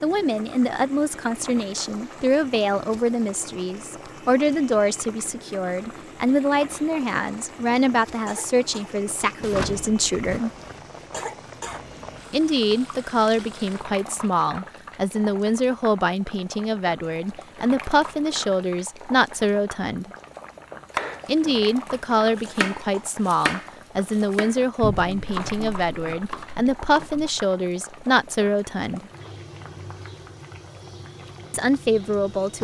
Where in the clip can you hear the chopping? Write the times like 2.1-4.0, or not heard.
20.9-27.4.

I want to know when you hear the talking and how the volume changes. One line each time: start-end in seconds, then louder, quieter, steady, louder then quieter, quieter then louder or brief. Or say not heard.
0.0-10.5 steady
12.3-20.1 steady
21.2-29.1 steady
31.5-32.5 brief.